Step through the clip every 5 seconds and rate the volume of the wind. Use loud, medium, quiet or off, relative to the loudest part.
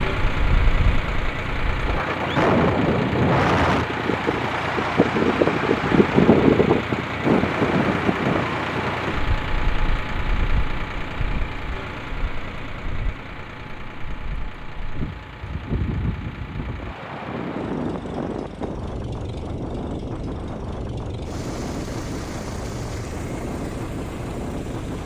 loud, loud, quiet, medium, medium.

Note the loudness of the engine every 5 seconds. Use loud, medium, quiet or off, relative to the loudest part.
loud, loud, medium, quiet, quiet.